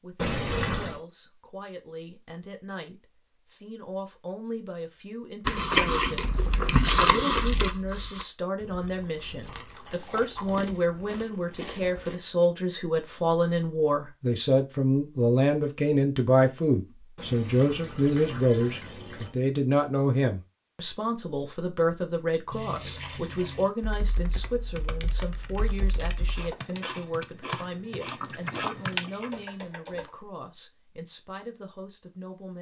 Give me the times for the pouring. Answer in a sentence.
The pouring can be heard from 0.1 to 1.0 s, from 17.1 to 19.4 s and from 22.5 to 23.7 s.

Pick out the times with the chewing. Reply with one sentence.
You can hear the chewing from 5.5 to 12.2 s and from 26.4 to 30.1 s.